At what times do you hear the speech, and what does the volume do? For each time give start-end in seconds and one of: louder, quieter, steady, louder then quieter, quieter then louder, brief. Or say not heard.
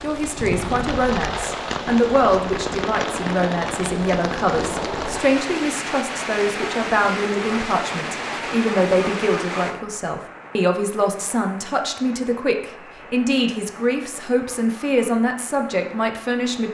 0.0-16.6 steady.